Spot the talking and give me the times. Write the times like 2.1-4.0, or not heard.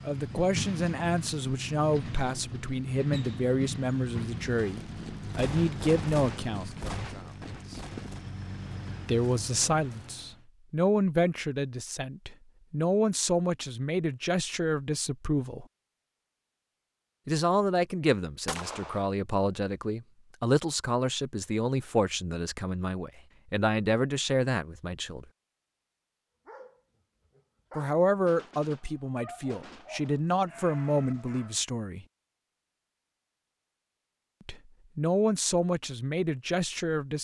0.1-6.8, 9.1-15.7, 17.2-25.2, 27.8-32.0, 34.5-37.2.